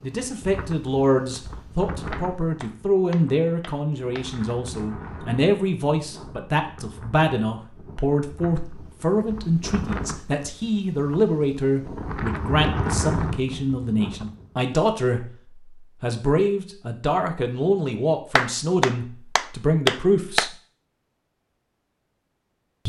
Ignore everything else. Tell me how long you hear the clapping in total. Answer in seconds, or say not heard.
5 s.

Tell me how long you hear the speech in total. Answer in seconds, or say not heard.
20 s.